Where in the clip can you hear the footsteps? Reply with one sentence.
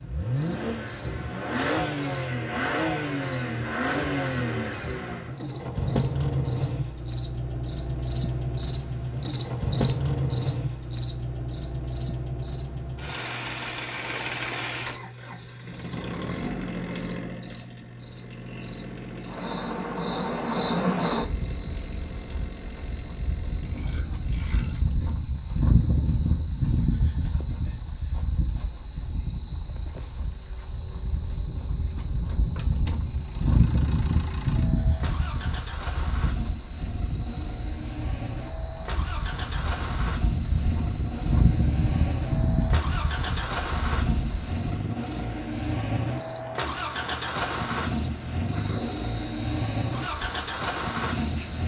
The footsteps can't be heard in this clip.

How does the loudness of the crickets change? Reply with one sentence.
The loudness of the crickets goes down.